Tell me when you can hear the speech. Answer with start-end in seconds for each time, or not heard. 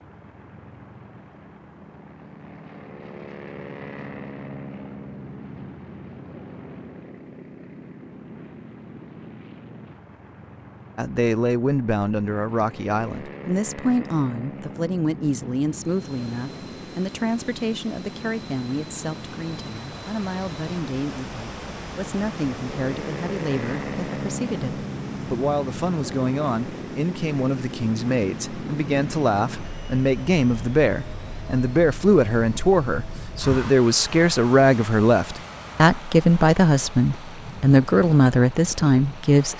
10.9-39.5.